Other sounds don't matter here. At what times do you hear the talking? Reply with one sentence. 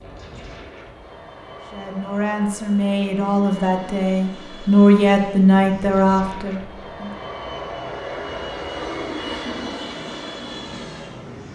The talking can be heard from 1.7 to 7.1 s.